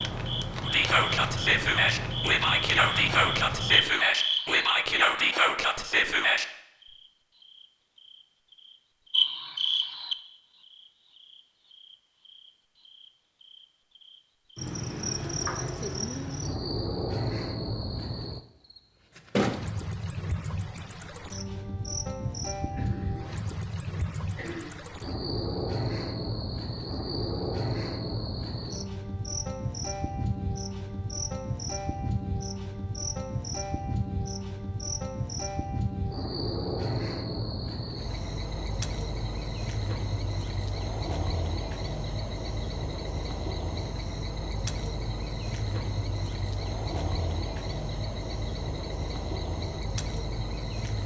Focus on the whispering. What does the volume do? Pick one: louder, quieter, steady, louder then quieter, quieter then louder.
steady.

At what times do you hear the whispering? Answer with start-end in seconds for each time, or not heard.
0.7-6.5.